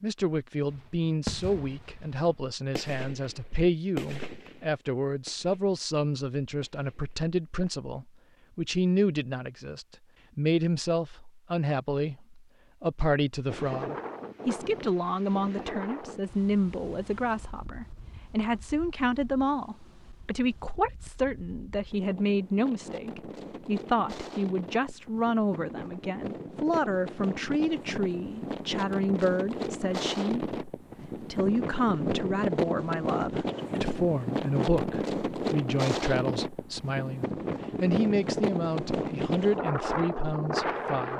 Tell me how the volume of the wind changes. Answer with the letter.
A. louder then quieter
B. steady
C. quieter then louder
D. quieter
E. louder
E.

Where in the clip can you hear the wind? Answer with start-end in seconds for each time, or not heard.
13.4-41.1.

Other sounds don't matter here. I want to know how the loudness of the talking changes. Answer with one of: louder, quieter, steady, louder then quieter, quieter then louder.
steady.